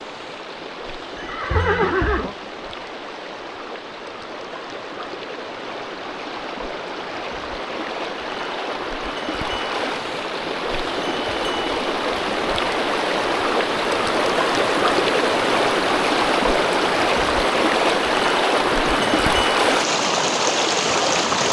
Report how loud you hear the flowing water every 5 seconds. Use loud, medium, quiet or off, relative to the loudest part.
quiet, medium, loud, loud, loud.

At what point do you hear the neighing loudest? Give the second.
2 s.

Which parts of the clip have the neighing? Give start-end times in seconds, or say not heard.
1.1-2.4, 18.7-19.4.